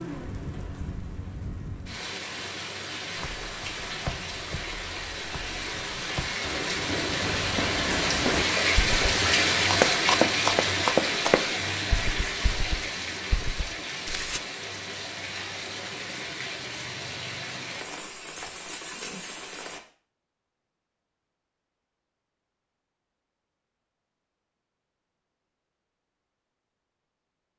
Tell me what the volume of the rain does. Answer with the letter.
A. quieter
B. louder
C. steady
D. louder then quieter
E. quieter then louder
D.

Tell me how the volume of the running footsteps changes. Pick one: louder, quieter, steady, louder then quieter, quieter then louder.
louder then quieter.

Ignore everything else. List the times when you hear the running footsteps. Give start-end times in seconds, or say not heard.
3.1-14.4.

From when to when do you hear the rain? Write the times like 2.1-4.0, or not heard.
0.0-19.8.